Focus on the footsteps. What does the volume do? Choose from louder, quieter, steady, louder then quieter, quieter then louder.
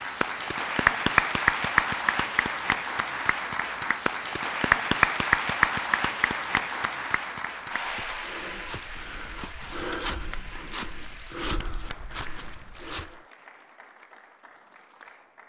louder then quieter.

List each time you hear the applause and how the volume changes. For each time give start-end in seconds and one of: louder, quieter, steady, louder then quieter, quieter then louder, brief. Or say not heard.
0.0-15.4 quieter.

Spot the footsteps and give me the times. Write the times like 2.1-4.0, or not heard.
7.8-13.2.